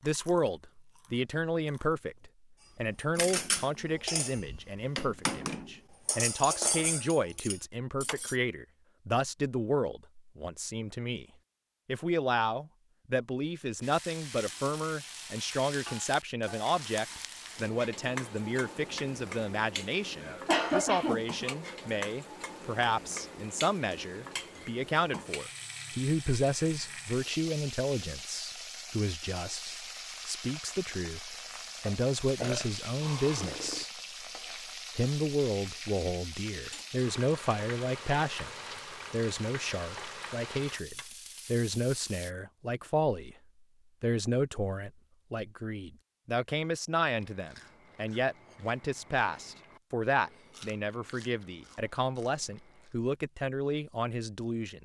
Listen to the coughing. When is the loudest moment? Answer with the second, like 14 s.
21 s.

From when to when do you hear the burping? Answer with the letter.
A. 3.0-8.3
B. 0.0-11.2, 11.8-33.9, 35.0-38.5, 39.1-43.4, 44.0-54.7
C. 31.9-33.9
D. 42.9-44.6
C.